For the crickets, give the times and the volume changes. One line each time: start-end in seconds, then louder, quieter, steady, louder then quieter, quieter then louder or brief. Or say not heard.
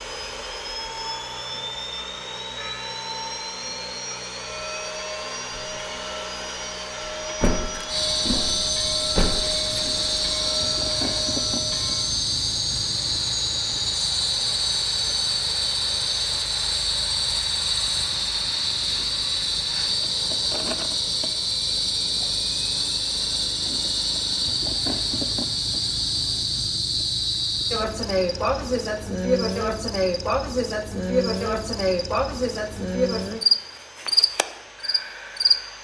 7.8-35.6 steady.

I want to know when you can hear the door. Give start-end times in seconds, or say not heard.
7.4-9.8.